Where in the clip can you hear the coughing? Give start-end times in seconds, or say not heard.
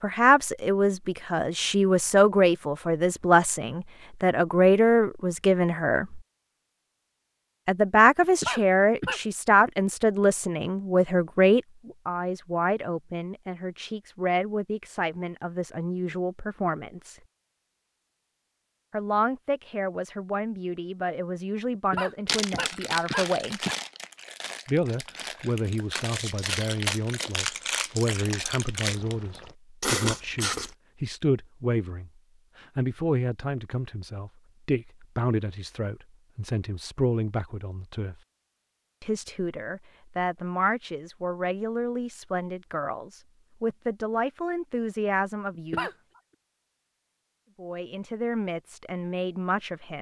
8.2-9.2, 21.7-23.8, 45.5-46.0.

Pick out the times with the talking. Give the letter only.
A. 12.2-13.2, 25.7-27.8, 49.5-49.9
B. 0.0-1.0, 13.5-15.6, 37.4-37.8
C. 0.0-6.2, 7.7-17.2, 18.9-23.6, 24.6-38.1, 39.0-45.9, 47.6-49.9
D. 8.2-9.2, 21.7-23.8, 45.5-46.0
C.